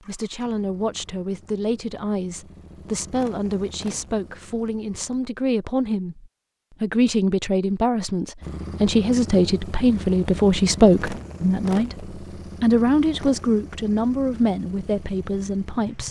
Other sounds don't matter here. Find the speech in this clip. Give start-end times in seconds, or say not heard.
0.1-16.0.